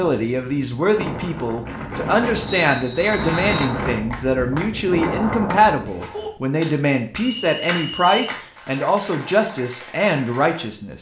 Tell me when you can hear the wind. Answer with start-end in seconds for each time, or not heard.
0.0-5.9.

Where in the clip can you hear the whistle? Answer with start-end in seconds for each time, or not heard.
2.5-3.8, 7.4-8.4.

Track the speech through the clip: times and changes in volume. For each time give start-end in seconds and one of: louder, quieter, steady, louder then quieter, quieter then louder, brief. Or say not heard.
0.0-10.9 steady.